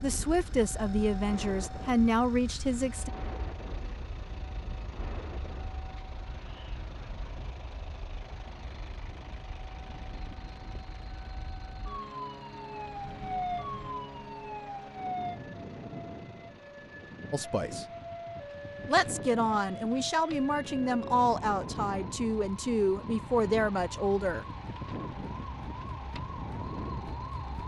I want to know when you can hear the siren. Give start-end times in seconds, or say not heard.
0.0-27.6.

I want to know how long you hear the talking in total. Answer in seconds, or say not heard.
9 s.